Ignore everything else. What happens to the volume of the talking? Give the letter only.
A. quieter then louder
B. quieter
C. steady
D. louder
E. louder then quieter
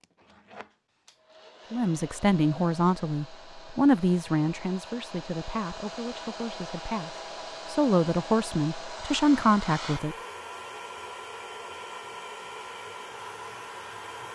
A.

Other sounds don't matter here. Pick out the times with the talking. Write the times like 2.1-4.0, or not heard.
1.7-10.2.